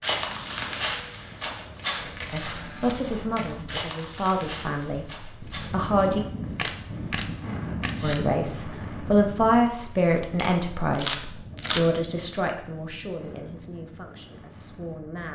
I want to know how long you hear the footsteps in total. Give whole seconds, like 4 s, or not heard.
6 s.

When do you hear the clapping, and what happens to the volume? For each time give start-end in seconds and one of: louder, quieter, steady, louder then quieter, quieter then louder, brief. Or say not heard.
not heard.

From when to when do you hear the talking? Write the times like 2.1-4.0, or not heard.
2.3-6.2, 8.0-15.2.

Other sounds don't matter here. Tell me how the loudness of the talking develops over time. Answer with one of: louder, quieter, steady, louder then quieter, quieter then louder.
louder then quieter.